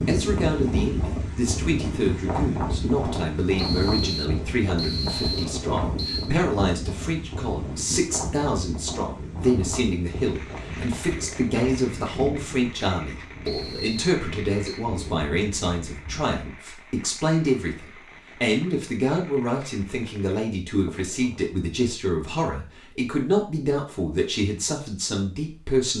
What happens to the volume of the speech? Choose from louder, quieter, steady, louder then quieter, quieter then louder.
steady.